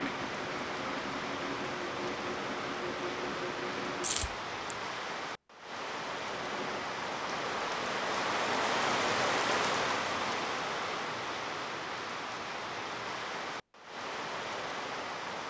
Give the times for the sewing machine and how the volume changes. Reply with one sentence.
You can hear the sewing machine from 0.0 to 4.1 s, at a steady volume; and briefly from 6.0 to 7.8 s.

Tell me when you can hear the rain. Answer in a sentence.
You can hear the rain from 0.0 to 15.4 s.